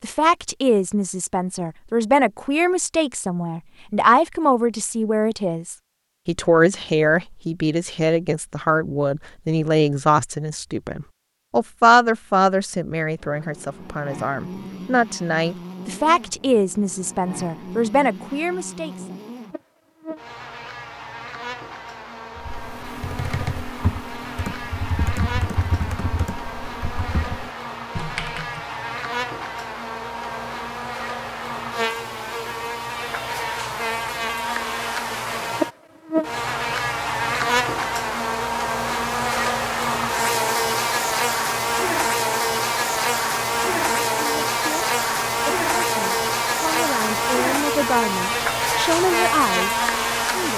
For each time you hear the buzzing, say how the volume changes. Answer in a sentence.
The buzzing can be heard from 13.2 to 50.5 s, getting louder.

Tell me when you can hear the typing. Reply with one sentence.
You can hear the typing from 22.4 to 28.6 s.